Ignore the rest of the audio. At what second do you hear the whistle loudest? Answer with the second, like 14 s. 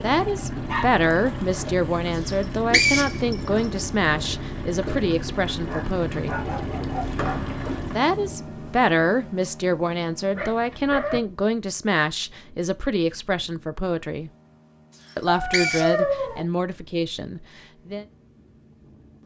3 s.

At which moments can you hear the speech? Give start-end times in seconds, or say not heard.
0.0-6.4, 8.0-14.3, 15.2-18.1.